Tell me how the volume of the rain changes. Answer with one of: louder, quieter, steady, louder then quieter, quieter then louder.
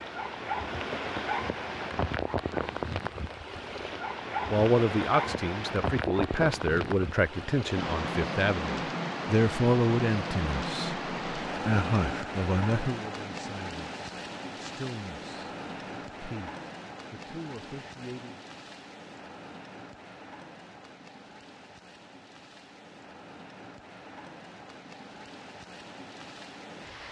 quieter.